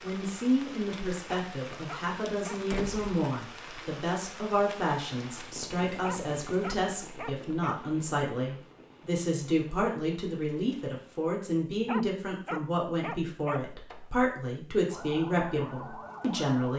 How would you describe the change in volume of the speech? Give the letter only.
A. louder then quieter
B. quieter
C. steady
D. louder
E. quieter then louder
C.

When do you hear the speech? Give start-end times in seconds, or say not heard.
0.0-16.7.